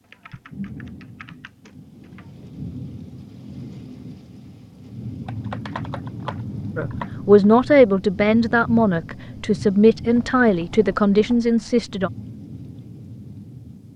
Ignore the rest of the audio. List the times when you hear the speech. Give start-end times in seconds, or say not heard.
6.8-12.1.